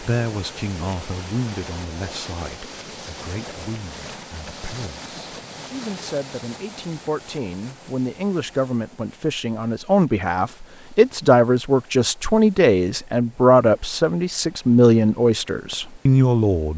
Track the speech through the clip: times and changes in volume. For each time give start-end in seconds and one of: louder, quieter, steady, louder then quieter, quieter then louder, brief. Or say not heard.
0.0-16.7 louder.